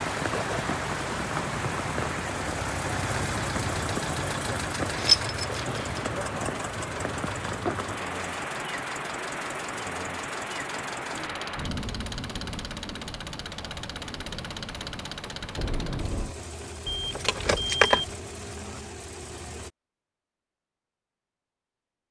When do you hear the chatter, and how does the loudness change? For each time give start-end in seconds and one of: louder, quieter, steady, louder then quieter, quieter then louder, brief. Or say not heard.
not heard.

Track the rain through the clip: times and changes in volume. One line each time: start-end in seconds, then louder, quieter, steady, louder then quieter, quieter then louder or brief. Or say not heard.
0.0-16.4 quieter.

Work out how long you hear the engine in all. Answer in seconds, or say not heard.
20 s.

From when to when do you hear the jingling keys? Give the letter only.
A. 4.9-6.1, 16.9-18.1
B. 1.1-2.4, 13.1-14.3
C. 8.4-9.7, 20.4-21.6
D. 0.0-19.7
A.